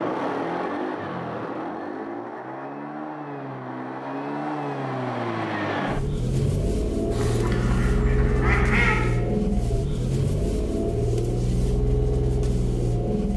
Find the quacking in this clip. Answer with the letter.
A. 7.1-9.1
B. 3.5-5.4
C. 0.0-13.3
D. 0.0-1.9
A.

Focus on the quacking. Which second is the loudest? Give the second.
9 s.